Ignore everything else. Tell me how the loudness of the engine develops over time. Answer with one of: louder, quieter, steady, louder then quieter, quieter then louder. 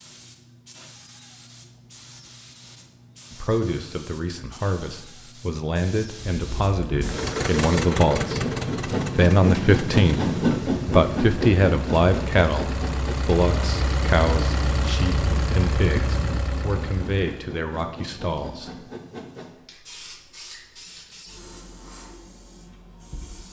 quieter then louder.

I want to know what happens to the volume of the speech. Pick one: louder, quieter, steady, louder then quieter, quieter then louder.
louder then quieter.